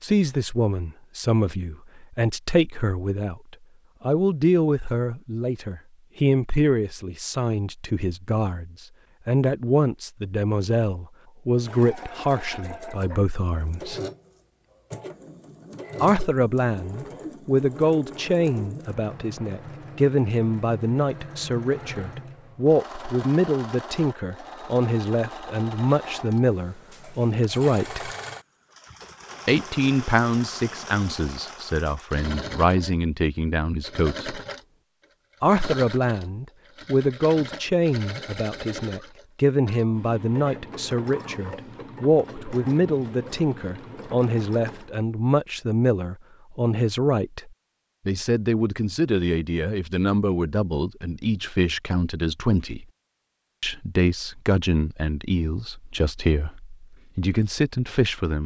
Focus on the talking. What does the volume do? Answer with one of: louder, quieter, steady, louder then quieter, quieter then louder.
steady.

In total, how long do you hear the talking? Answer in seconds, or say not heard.
53 s.